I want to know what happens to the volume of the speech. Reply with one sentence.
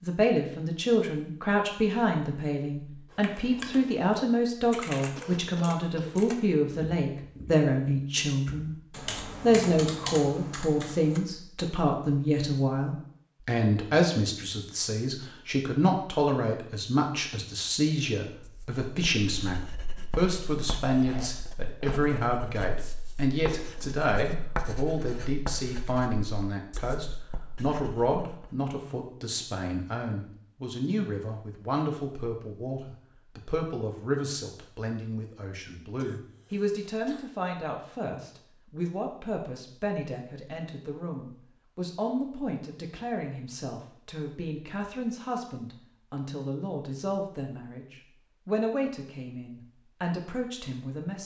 The loudness of the speech goes down.